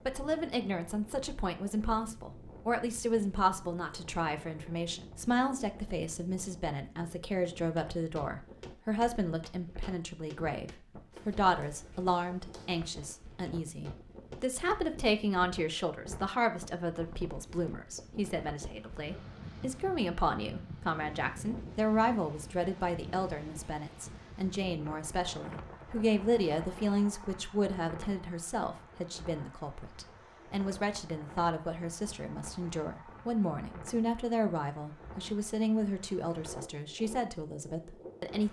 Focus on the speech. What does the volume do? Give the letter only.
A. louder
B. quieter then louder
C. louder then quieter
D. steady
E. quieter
D.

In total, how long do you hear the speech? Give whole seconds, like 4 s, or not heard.
38 s.